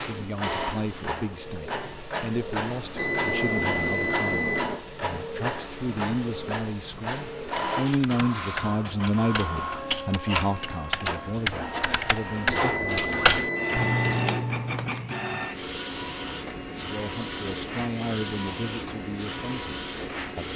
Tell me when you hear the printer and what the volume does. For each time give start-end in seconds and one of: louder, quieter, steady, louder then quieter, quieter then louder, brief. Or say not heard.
0.0-20.5 steady.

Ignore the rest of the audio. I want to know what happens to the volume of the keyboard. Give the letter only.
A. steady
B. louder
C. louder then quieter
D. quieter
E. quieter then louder
B.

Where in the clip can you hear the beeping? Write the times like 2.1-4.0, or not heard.
3.0-4.8, 12.4-14.4.